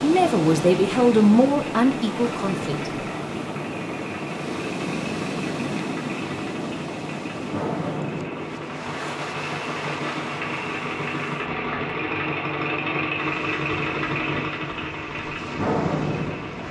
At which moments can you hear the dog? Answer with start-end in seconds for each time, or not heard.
not heard.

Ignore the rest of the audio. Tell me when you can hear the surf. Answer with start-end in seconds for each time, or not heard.
0.0-16.6.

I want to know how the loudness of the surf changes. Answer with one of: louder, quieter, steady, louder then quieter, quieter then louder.
quieter.